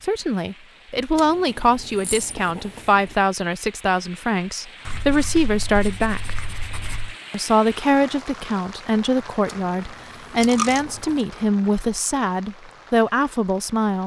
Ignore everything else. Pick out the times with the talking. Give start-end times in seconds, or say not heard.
0.0-6.4, 7.3-14.0.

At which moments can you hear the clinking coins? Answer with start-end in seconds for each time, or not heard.
1.9-2.4, 10.4-11.2.